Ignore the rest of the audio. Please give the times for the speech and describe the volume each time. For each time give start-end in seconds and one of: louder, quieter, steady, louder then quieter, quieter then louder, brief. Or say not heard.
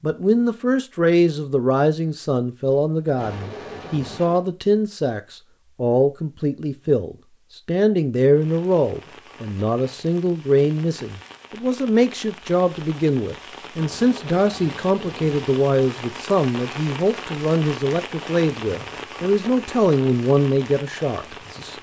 0.0-21.7 steady.